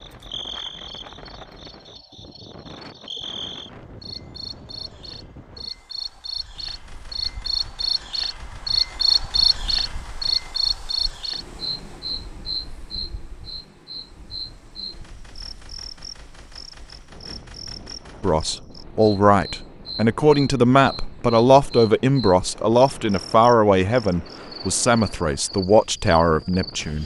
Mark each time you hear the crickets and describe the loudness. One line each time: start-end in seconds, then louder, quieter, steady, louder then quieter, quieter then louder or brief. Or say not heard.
0.0-27.0 louder then quieter.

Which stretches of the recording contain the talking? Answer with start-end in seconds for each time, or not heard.
18.2-27.0.